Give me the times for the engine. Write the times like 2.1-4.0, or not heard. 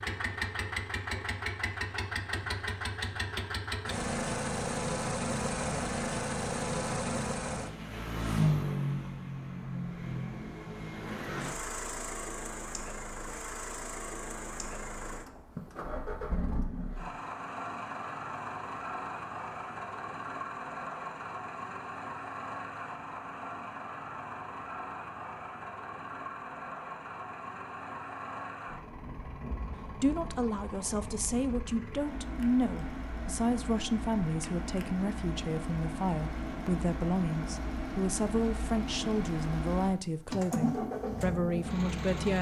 0.0-42.3.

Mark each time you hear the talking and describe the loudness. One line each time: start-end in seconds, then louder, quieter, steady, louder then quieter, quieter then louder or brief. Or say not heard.
29.9-42.3 steady.